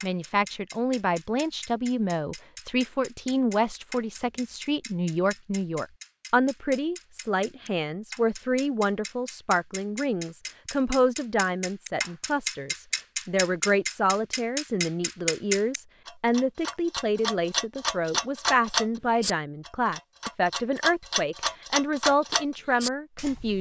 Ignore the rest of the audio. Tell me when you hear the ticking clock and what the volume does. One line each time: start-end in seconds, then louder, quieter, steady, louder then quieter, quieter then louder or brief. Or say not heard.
0.0-23.5 louder.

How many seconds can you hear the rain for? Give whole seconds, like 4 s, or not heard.
not heard.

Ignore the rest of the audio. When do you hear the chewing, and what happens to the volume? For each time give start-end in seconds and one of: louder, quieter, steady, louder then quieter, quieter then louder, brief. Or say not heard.
not heard.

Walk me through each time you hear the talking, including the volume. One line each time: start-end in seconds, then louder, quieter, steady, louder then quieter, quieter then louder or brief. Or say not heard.
0.0-23.5 steady.